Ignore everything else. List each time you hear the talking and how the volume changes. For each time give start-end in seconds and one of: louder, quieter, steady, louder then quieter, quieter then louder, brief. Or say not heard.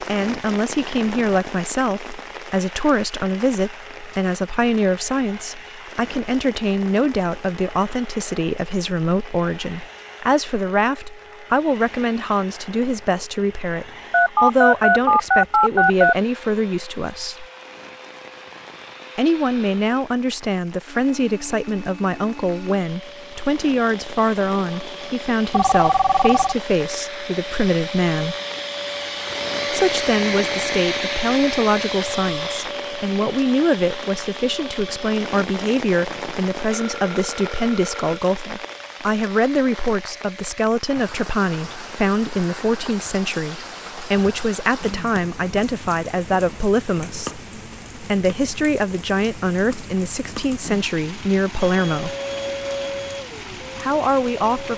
0.0-17.4 steady
19.1-28.4 steady
29.7-52.1 steady
53.8-54.7 brief.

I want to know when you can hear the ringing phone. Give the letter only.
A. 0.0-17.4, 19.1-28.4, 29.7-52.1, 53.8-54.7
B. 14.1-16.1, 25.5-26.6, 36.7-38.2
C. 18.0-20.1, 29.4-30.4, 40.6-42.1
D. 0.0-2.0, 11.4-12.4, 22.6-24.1
B.